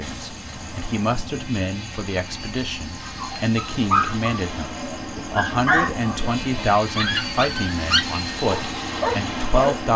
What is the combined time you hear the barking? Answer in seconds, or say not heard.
7 s.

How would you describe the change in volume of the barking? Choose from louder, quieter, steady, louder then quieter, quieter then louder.
quieter then louder.